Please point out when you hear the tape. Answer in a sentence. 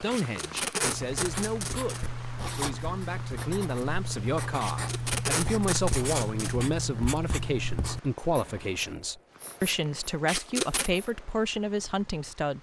You can hear the tape from 0.1 to 2.0 s, from 4.6 to 6.5 s and from 10.2 to 10.9 s.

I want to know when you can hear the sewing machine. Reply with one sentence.
The sewing machine can't be heard in this clip.